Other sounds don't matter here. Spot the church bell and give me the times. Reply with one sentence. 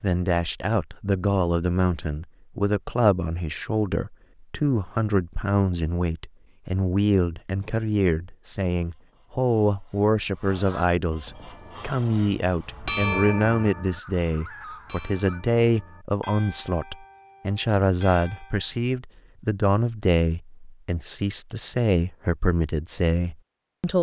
You can hear the church bell from 11.2 to 18.8 s.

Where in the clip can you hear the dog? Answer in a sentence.
You can't hear the dog here.